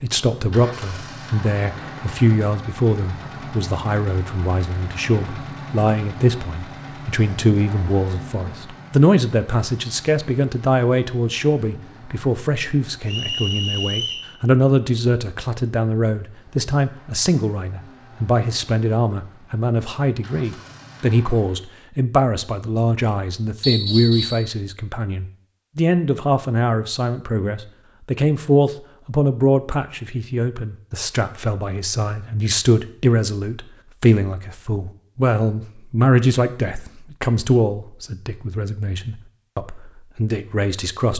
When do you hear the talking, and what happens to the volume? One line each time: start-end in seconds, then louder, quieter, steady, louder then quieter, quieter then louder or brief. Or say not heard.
0.0-41.1 steady.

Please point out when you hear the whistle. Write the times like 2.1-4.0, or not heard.
13.1-14.3, 23.6-24.4.